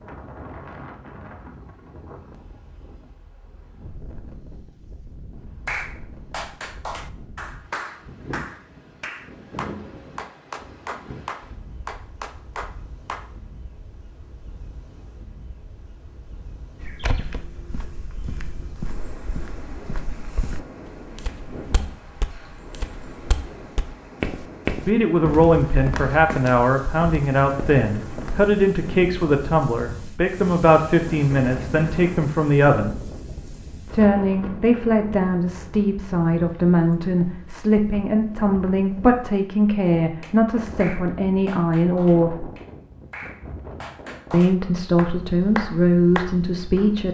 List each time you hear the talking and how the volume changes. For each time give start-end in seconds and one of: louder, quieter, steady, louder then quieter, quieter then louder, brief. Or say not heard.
24.8-33.0 steady
33.9-42.5 steady
44.3-47.1 brief.